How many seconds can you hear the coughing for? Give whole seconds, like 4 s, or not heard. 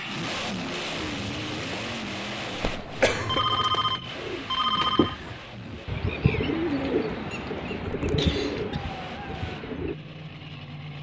2 s.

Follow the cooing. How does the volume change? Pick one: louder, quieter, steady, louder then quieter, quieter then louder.
louder.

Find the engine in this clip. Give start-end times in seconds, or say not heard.
0.0-10.9.